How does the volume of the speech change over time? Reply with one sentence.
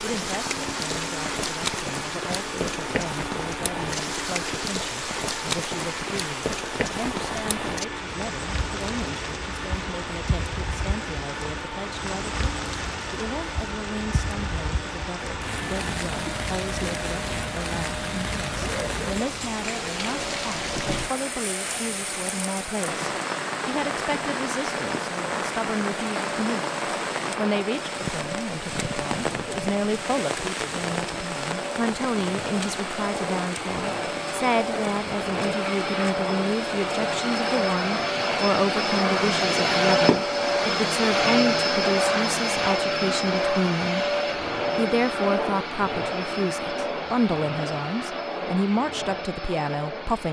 The loudness of the speech goes up.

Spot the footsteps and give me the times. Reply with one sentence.
The footsteps can't be heard in this clip.